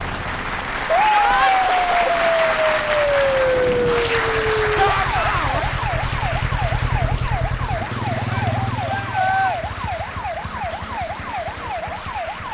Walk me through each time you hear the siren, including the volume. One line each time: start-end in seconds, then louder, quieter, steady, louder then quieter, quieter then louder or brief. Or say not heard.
0.0-12.4 quieter.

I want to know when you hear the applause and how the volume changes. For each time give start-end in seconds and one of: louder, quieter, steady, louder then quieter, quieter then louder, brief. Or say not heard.
0.0-12.4 quieter.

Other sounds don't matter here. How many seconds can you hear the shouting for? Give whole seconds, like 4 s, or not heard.
3 s.